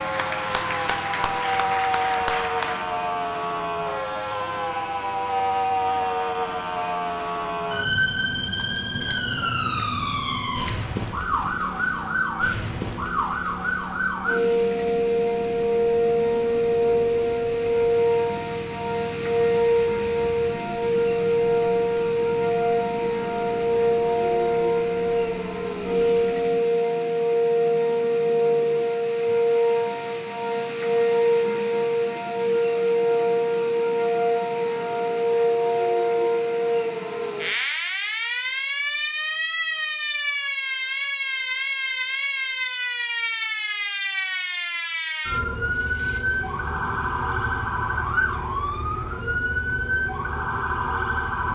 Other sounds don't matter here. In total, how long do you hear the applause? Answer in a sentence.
The applause can be heard for 3 seconds in total.